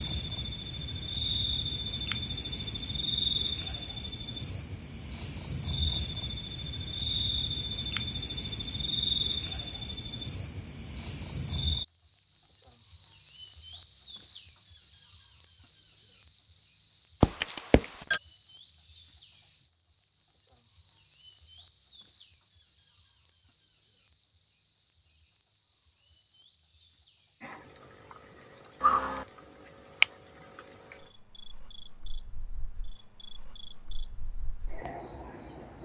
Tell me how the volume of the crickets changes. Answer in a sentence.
The loudness of the crickets goes down.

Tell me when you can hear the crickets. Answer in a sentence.
You can hear the crickets from 0.0 to 35.7 s.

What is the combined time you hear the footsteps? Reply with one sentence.
The footsteps can't be heard in this clip.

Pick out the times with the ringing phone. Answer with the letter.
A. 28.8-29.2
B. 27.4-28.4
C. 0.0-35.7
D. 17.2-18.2
D.